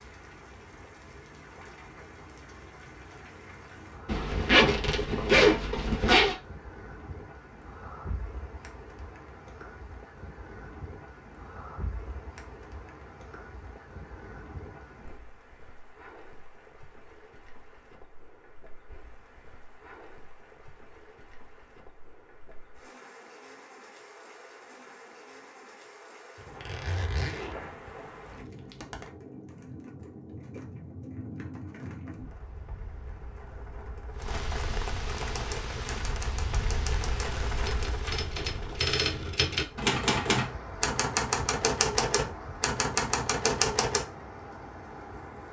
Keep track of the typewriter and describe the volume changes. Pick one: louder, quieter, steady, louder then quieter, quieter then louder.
louder.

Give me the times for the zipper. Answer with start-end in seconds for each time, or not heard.
4.0-6.3, 26.4-29.1.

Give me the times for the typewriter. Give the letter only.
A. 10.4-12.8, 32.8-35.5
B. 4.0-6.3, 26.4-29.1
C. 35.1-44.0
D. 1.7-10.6
C.